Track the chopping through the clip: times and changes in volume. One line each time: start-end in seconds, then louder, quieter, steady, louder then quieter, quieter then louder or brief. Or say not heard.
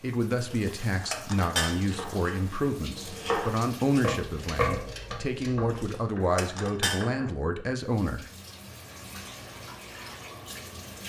1.8-7.3 louder then quieter.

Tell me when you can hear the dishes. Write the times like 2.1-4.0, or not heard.
0.4-1.8, 5.7-7.1.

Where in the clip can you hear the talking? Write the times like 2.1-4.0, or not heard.
0.0-8.2.